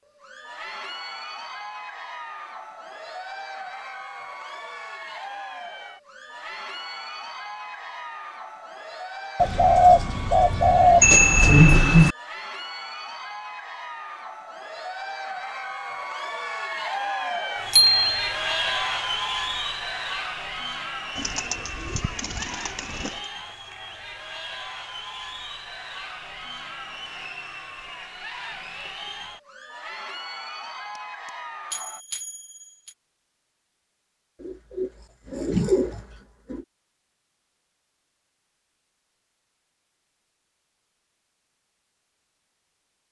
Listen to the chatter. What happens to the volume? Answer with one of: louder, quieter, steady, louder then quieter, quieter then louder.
louder then quieter.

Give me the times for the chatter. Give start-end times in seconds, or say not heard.
0.1-32.0.